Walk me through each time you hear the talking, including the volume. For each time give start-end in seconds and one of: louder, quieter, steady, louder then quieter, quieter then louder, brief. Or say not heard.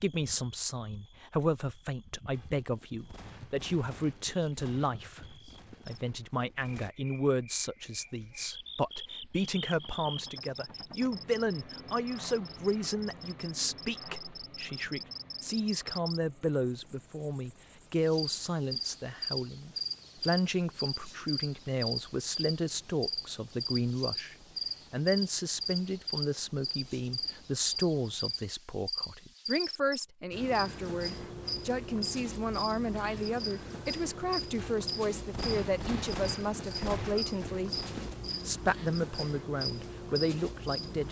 0.0-37.8 steady
38.5-41.0 brief.